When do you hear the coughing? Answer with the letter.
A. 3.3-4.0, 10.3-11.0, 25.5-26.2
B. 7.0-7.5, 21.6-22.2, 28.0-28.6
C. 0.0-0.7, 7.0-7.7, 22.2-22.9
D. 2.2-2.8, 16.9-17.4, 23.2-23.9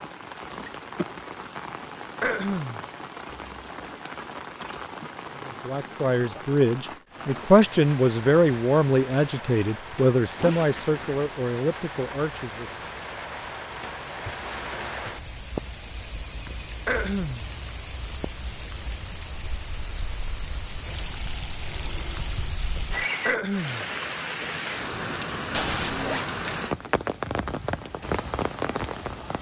D.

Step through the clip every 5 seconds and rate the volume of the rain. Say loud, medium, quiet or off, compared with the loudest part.
medium, medium, medium, medium, loud, loud.